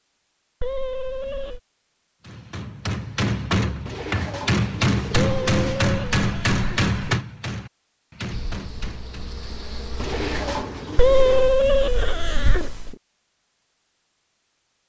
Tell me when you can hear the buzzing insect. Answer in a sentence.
You can hear the buzzing insect from 8.3 to 10.7 s.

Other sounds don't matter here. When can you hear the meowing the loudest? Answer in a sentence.
The loudest moment of the meowing is at 11 seconds.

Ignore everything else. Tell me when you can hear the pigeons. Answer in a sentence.
You can hear the pigeons from 3.9 to 5.8 s and from 9.9 to 11.6 s.